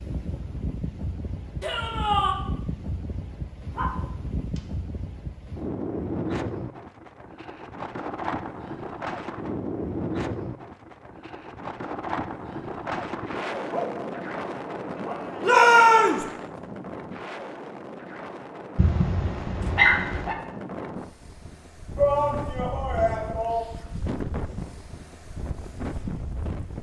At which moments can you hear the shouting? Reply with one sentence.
The shouting can be heard from 1.6 to 2.4 s, from 15.4 to 16.2 s and from 21.9 to 23.6 s.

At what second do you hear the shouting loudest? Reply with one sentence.
The loudest moment of the shouting is at 16 seconds.